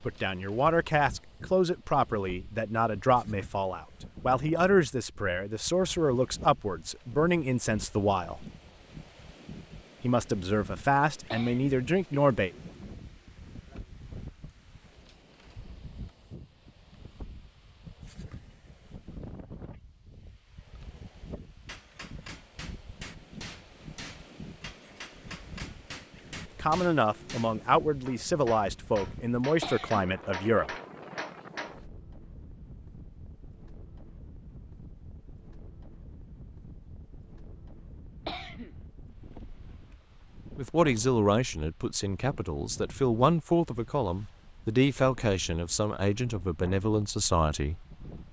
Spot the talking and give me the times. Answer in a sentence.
The talking can be heard from 0.0 to 8.4 s, from 10.0 to 12.5 s, from 26.6 to 30.8 s and from 40.5 to 47.8 s.